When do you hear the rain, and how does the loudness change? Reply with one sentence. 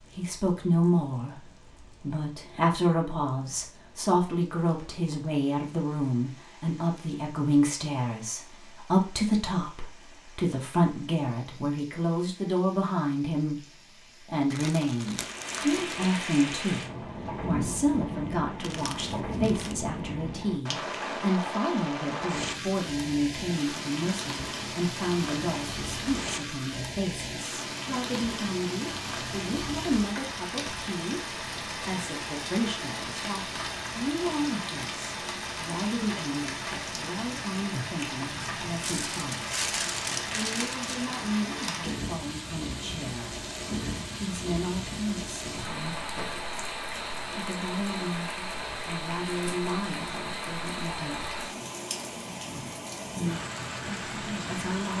The rain can be heard from 0.0 to 54.9 s, getting louder.